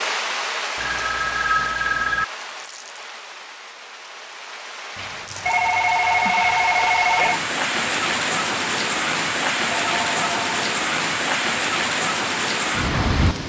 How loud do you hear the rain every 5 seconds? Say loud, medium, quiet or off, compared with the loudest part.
medium, loud, loud.